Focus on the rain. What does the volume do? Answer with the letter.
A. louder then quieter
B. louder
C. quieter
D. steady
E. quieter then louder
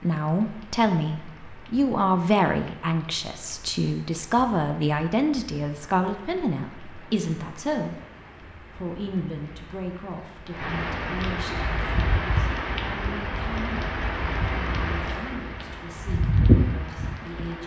B.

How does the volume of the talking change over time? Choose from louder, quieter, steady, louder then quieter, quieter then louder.
quieter.